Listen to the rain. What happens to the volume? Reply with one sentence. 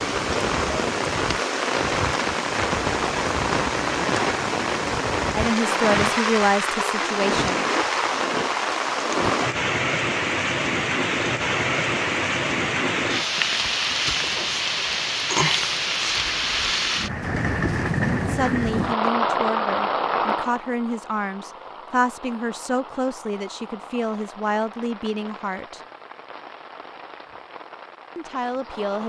The volume of the rain goes down.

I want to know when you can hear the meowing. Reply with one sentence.
You can't hear the meowing here.